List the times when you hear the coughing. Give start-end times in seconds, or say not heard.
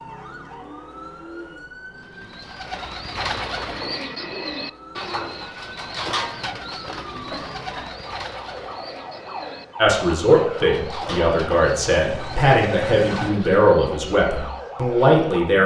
7.2-8.0.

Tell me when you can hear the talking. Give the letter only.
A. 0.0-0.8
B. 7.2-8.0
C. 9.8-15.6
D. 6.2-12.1
C.